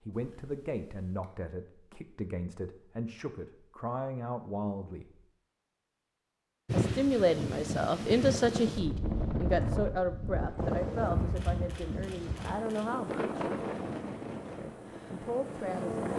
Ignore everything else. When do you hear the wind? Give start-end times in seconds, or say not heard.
6.7-16.1.